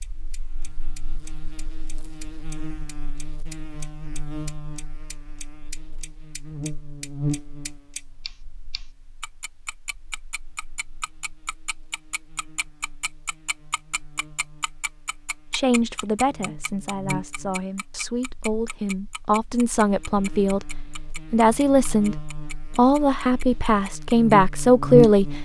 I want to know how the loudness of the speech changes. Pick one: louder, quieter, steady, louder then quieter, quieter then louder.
louder.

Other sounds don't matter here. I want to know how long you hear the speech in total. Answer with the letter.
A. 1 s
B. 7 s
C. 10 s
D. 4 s
C.